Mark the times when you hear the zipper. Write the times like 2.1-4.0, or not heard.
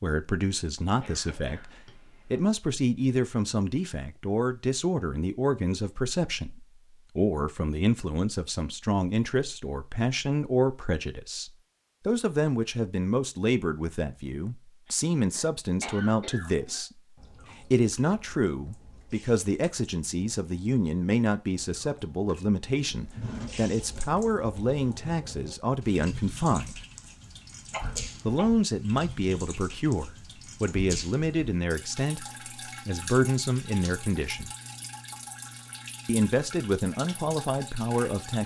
not heard.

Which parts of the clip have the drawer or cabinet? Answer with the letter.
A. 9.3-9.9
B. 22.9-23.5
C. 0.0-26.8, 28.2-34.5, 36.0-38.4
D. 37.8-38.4
B.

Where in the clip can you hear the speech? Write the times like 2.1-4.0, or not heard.
0.0-26.8, 28.2-34.5, 36.0-38.4.